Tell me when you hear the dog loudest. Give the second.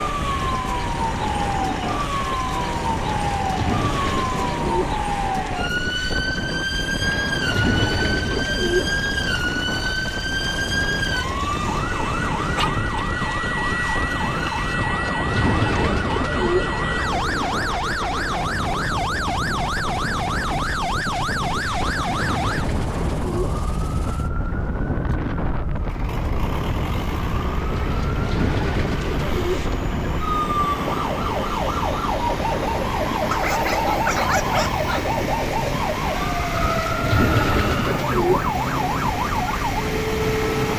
34 s.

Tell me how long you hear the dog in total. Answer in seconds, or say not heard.
3 s.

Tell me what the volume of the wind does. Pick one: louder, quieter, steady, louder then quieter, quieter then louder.
steady.